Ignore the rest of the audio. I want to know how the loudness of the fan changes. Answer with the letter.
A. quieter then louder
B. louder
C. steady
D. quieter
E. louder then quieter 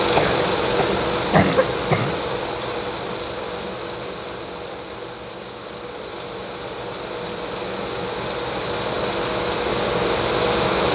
A.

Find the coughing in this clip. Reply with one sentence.
You can hear the coughing from 0.1 to 2.2 s.